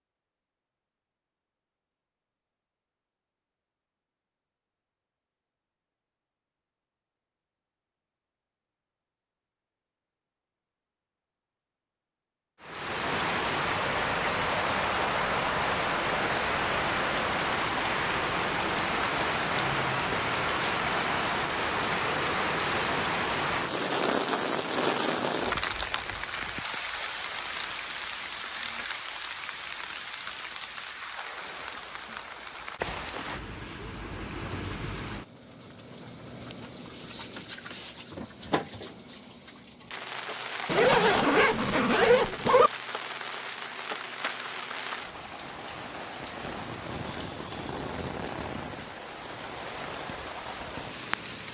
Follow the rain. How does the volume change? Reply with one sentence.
The volume of the rain goes down.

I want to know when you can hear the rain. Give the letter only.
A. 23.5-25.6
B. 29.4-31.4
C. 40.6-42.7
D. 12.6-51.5
D.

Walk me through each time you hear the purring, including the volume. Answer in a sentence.
You can't hear the purring here.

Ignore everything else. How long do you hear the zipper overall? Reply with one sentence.
The zipper can be heard for 2 seconds in total.